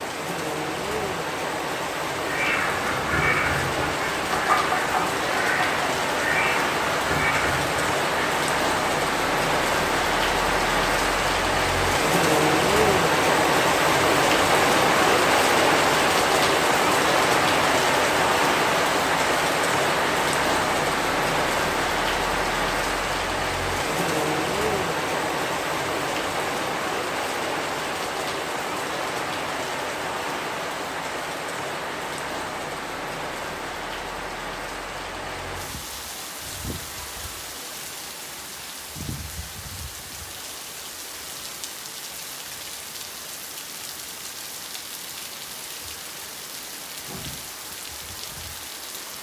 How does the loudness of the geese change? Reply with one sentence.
The volume of the geese stays about the same.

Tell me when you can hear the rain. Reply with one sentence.
The rain can be heard from 0.0 to 49.1 s.